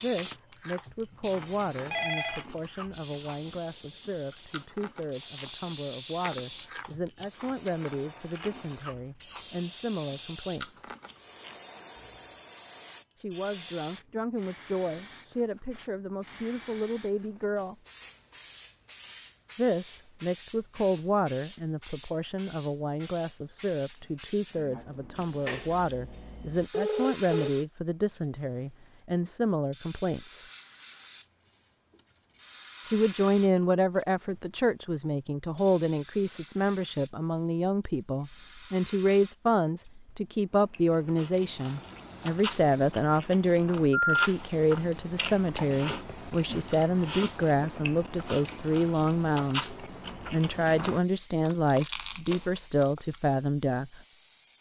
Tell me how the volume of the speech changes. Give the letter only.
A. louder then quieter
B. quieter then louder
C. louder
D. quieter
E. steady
C.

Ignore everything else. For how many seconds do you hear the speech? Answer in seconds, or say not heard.
47 s.